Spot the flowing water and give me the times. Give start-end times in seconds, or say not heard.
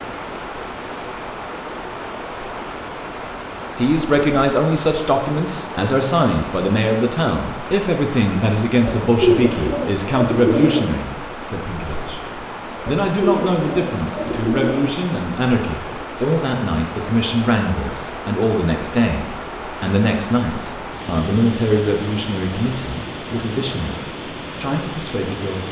0.0-25.6.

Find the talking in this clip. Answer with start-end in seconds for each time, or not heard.
3.8-25.6.